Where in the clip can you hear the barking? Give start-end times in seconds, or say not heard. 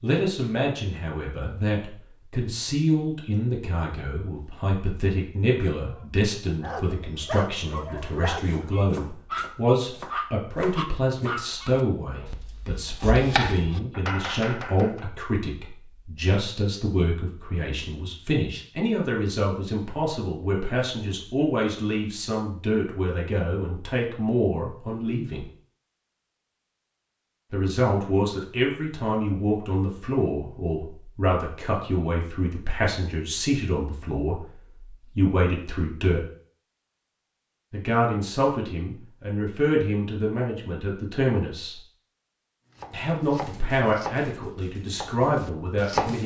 5.8-12.3.